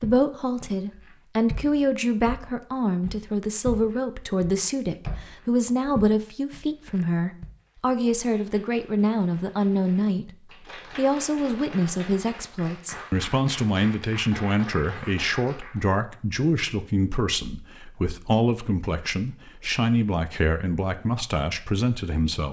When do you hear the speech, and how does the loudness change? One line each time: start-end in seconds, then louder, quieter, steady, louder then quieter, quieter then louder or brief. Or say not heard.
0.0-22.4 steady.